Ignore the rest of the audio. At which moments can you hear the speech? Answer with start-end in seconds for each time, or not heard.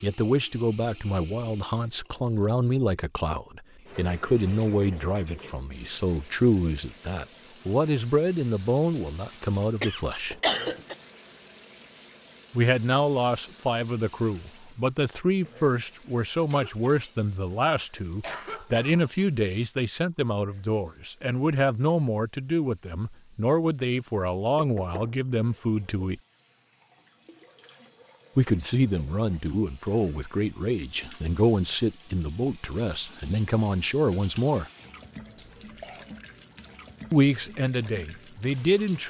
0.0-10.3, 12.5-26.2, 28.4-34.7, 37.1-39.0.